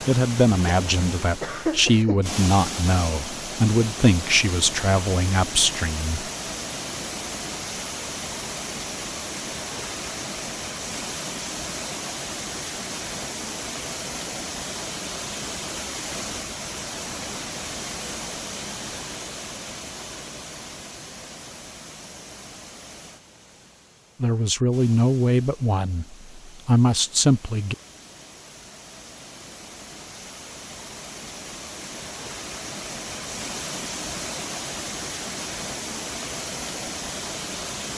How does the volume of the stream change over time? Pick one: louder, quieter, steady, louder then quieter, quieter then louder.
quieter then louder.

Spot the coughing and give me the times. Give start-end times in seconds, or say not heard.
0.7-2.2.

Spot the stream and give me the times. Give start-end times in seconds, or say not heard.
0.0-37.9.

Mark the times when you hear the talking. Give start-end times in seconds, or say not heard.
0.1-6.3, 24.2-27.8.